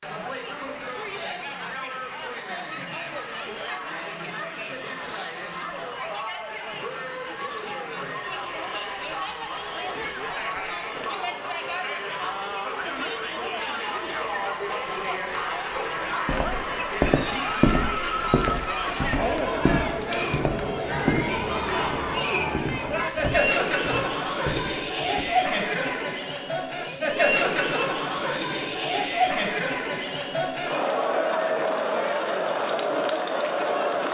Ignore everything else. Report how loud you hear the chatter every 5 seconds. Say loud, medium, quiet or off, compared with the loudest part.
medium, medium, medium, loud, loud, loud, loud.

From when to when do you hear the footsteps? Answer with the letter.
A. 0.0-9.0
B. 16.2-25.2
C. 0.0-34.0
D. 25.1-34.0
B.